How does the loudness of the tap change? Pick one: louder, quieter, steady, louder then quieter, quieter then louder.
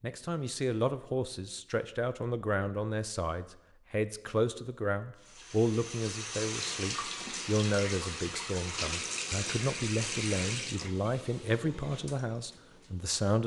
quieter.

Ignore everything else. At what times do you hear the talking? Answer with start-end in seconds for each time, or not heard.
0.0-13.4.